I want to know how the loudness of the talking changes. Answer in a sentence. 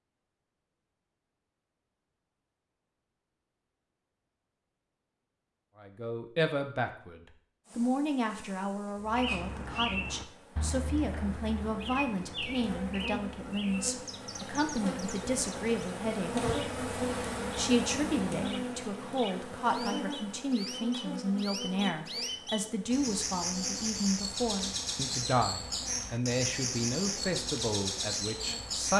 The loudness of the talking stays about the same.